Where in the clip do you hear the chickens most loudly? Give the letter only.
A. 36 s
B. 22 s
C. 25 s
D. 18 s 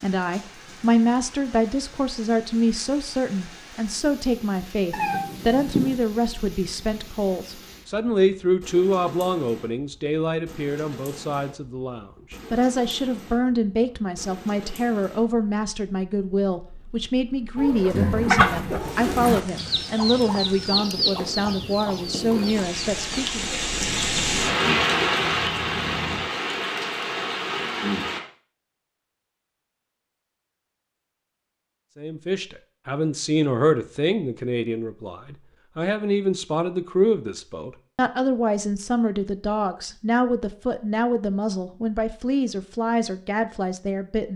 D.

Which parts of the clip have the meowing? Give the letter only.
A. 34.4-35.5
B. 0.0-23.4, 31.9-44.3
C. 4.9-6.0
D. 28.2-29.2
C.